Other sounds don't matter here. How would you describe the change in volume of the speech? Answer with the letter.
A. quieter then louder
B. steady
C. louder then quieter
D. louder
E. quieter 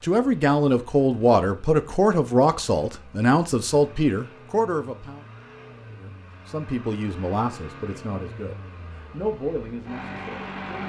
E.